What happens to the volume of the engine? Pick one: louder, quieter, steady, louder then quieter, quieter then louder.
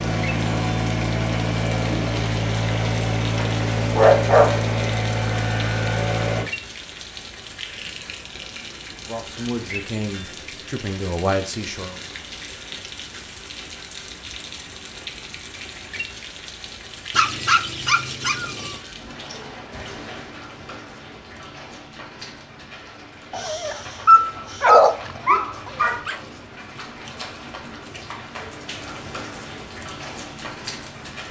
steady.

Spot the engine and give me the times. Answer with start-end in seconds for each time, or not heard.
0.0-6.5.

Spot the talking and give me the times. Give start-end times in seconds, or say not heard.
9.0-12.0.